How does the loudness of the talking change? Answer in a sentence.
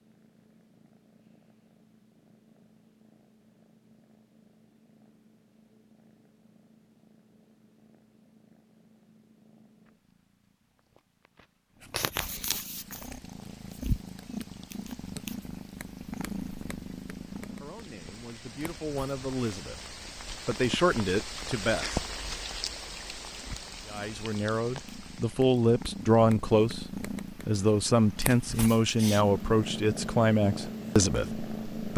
The volume of the talking goes up.